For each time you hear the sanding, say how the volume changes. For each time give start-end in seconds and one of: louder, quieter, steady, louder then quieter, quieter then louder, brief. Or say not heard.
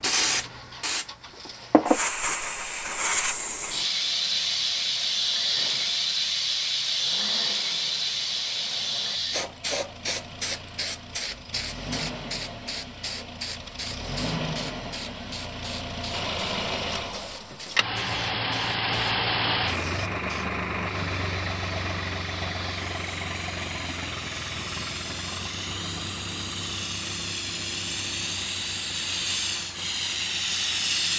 not heard.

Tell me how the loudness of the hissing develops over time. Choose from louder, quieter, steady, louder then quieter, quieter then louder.
quieter then louder.